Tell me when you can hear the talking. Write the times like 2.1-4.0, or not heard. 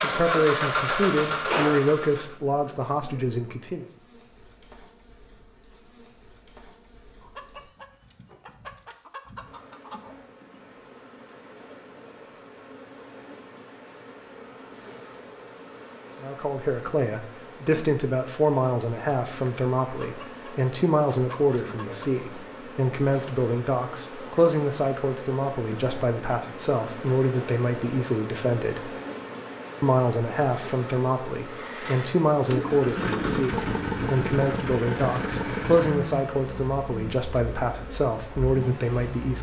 0.0-3.9, 16.2-28.9, 29.8-39.3.